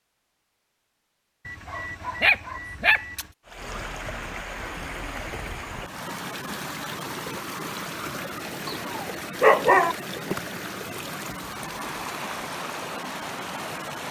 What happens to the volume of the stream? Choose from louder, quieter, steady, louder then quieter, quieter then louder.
steady.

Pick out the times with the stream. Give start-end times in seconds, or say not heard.
3.5-14.0.